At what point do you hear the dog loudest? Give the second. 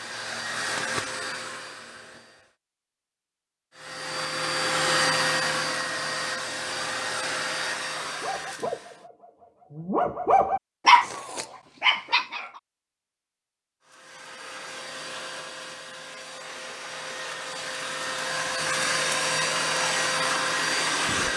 11 s.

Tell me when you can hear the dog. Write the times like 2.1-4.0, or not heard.
7.9-12.4.